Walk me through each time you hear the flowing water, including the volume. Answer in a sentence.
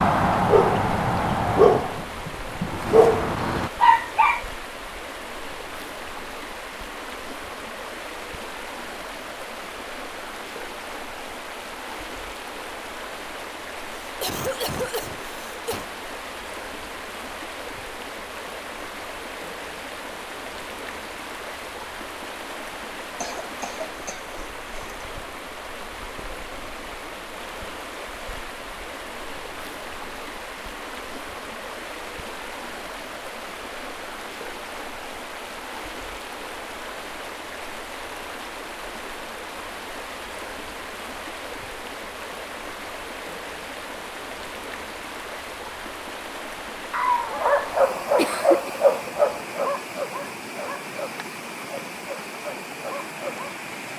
The flowing water can be heard from 0.0 to 53.9 s, at a steady volume.